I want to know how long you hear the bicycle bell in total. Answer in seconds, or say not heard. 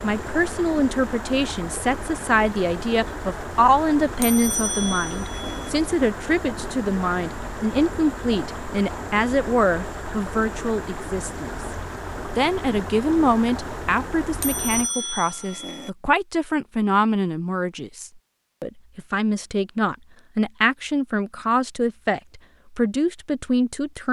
3 s.